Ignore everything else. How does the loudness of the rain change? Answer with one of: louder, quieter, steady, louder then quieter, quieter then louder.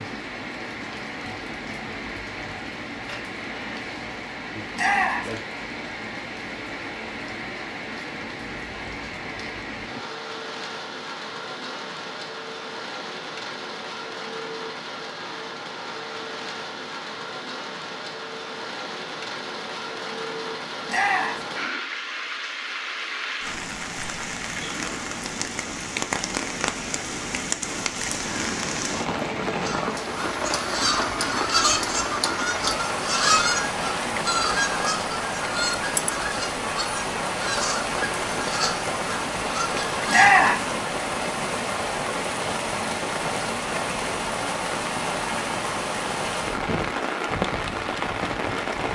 louder.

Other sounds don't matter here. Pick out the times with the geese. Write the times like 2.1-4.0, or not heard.
29.6-40.5.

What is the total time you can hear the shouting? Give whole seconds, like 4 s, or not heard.
2 s.